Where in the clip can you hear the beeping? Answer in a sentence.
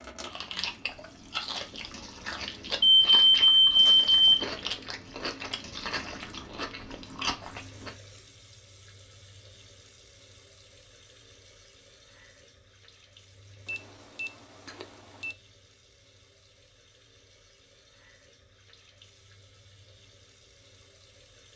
The beeping can be heard from 2.8 to 4.5 s and from 13.7 to 15.3 s.